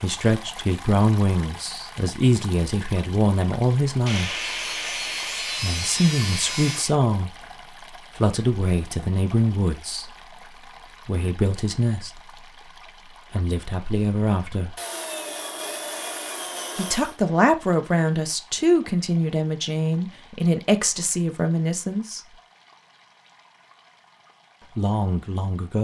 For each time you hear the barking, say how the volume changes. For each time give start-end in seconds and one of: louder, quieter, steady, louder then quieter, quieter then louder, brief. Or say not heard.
not heard.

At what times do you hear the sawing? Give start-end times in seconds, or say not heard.
4.0-7.0, 14.8-17.1.